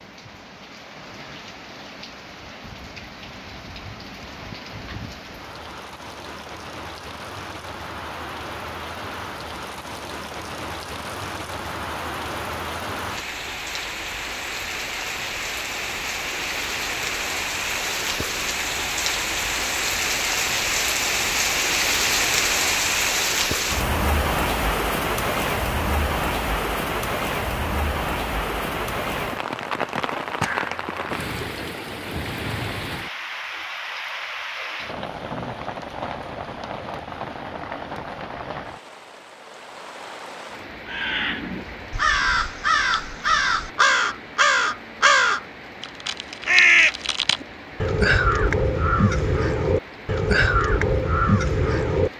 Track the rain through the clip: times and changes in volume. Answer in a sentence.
The rain can be heard from 0.0 to 52.1 s, getting louder then quieter.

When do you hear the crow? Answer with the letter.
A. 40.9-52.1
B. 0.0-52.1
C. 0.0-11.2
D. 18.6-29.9
A.